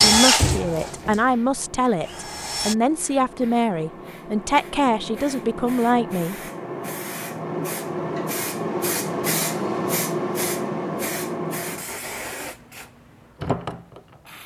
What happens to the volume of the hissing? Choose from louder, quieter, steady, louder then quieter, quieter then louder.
louder then quieter.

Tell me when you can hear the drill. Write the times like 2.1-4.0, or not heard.
0.0-2.8.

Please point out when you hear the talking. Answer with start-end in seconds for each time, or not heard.
0.0-6.3.